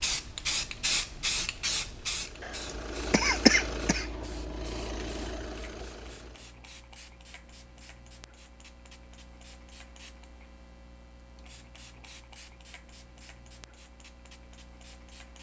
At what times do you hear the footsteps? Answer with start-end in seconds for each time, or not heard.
not heard.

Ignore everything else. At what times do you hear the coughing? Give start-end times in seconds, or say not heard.
2.4-4.1.